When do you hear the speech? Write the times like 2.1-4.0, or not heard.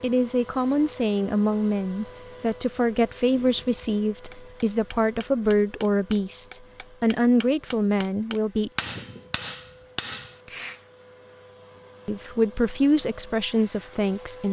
0.0-8.7, 12.1-14.4.